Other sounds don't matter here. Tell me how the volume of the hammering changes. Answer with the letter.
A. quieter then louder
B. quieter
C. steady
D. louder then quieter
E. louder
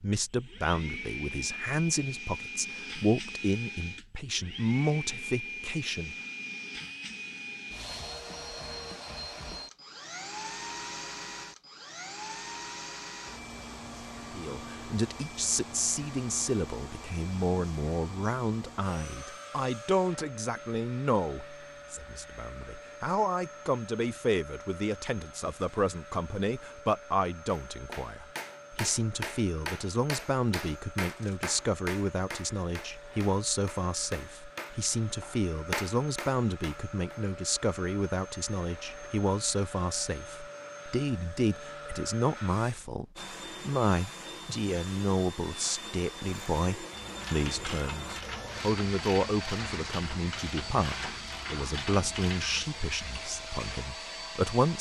A.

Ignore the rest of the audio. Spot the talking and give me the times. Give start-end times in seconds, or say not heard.
0.0-6.2, 14.3-54.7.